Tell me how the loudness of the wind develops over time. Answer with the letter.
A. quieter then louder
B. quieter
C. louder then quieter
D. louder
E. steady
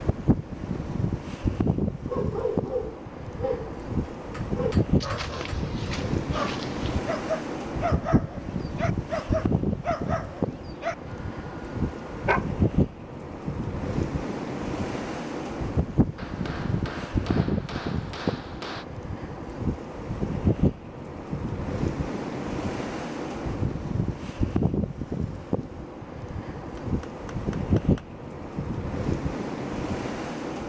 E.